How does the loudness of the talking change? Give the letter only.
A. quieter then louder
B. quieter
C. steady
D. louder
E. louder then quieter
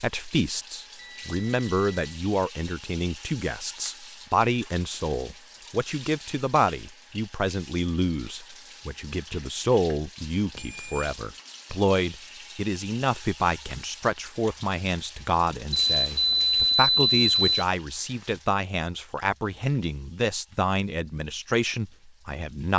C.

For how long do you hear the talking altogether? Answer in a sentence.
The talking can be heard for 23 seconds in total.